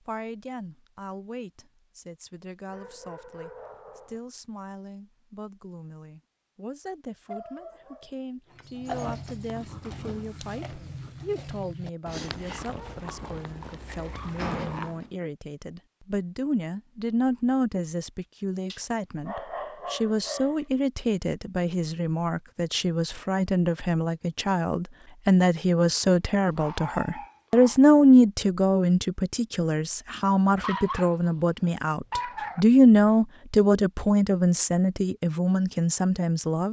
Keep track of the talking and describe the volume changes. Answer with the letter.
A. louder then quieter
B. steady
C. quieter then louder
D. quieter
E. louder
E.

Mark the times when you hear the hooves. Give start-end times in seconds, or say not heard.
8.5-15.1.